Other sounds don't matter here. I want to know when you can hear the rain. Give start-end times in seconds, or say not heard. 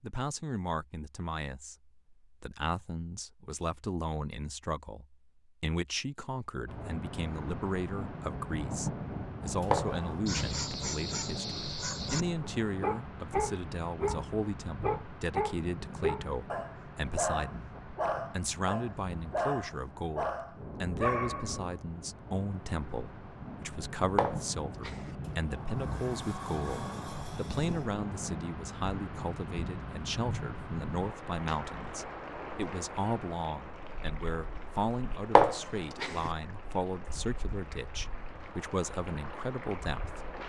6.7-40.4.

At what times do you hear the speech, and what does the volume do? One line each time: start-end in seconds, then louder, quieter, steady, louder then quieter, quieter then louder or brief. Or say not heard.
0.0-40.2 steady.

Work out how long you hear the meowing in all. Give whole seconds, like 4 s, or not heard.
3 s.